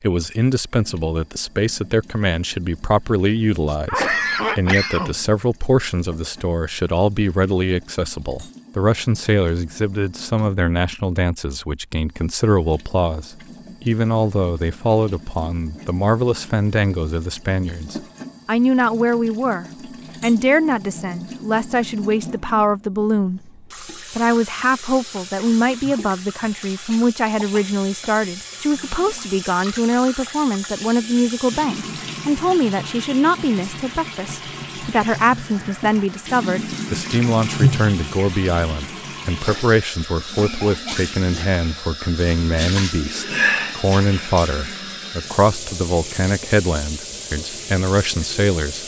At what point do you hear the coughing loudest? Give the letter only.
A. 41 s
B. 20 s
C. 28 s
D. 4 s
D.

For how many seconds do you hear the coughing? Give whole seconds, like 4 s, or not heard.
5 s.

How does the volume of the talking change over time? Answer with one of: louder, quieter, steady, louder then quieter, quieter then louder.
steady.